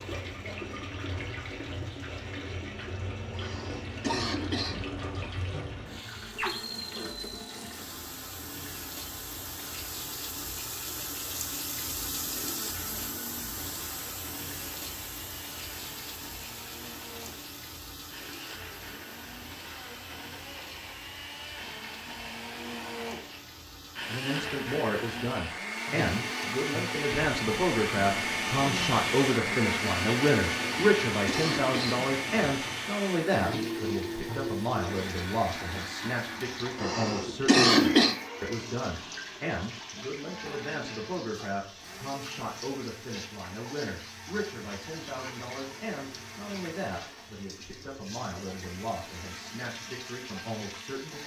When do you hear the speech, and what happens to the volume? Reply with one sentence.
The speech can be heard from 24.1 to 51.2 s, getting quieter.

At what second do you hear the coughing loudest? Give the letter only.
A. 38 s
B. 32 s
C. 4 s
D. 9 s
A.